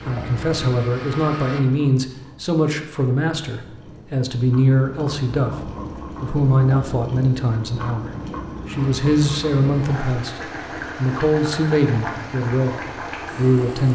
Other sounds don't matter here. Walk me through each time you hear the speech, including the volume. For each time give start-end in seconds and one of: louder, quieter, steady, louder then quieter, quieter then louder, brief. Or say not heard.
0.1-13.9 steady.